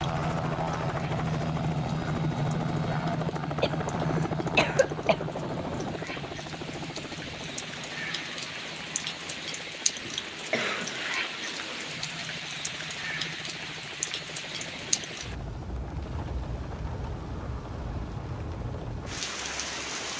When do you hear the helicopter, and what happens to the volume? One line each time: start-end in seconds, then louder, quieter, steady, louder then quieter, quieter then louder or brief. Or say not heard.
0.0-20.1 quieter.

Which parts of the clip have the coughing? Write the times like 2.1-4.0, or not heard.
3.6-5.2, 10.5-11.2.